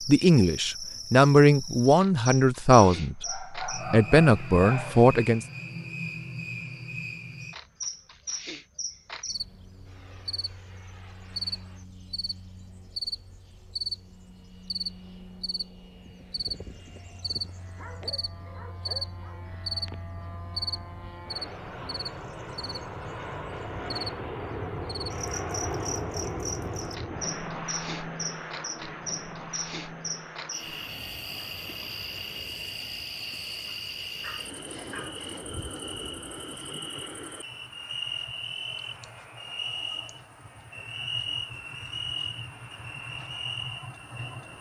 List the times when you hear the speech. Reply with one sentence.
You can hear the speech from 0.1 to 5.5 s.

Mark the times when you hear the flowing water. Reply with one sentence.
The flowing water can't be heard in this clip.